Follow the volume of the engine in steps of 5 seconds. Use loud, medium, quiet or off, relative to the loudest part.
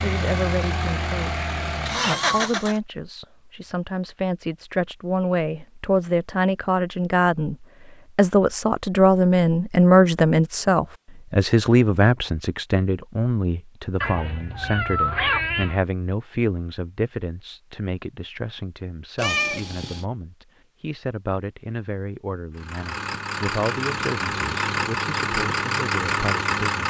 loud, off, off, off, loud, loud.